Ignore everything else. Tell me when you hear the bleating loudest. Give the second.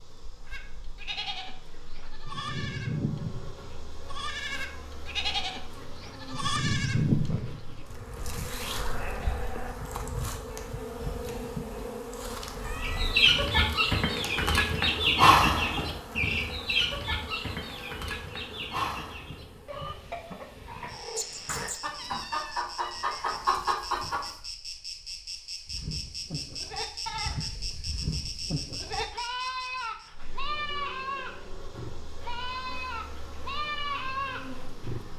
7 s.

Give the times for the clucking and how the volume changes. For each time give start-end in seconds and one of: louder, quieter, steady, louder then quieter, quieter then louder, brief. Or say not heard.
12.8-24.3 quieter then louder.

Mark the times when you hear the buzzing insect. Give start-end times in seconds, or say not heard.
0.0-35.1.